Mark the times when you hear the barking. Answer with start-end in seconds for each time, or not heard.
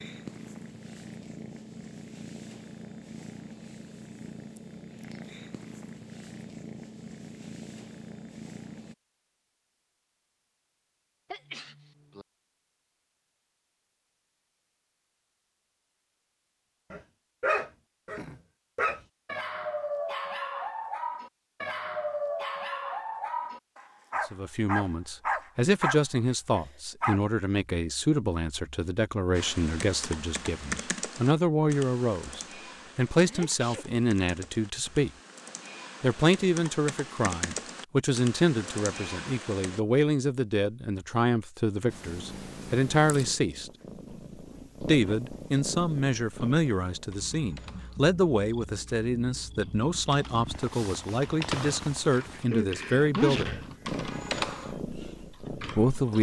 16.9-27.2.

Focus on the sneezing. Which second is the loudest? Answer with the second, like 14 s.
53 s.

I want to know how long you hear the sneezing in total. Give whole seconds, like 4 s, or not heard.
3 s.